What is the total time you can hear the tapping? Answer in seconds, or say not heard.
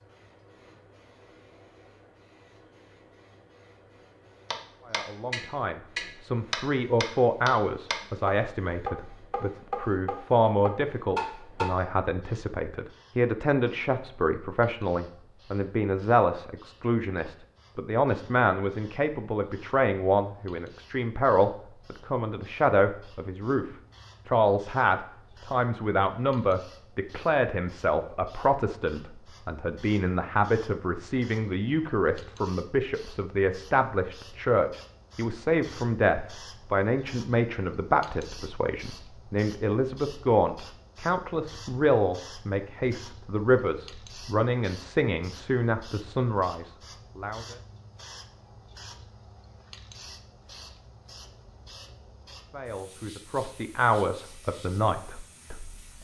7 s.